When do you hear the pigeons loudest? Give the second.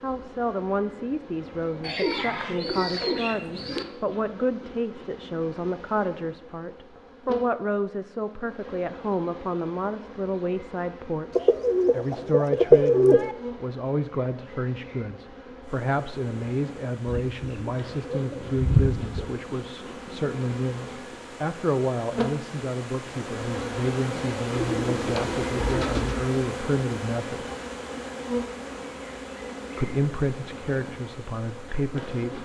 13 s.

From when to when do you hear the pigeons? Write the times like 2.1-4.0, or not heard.
1.8-3.9, 11.3-13.3, 17.1-19.2, 24.5-26.2.